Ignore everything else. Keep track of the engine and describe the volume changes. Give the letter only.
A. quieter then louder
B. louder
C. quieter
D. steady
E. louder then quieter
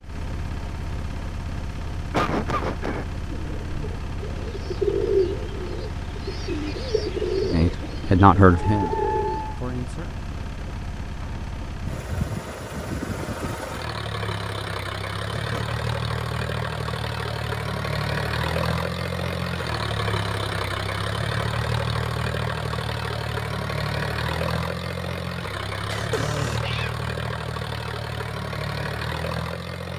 B.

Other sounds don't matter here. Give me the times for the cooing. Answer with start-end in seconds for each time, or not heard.
3.2-9.6.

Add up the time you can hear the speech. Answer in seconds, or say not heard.
3 s.